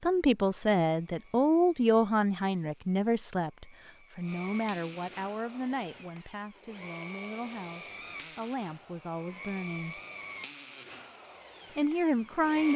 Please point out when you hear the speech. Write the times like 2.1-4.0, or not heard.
0.0-10.0, 11.8-12.7.